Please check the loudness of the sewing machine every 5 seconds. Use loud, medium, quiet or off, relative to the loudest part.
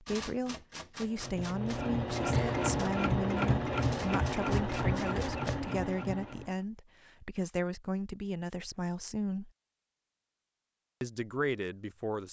loud, medium, off.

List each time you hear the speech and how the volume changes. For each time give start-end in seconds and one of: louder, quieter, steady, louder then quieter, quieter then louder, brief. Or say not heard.
0.0-9.5 steady
11.0-12.2 brief.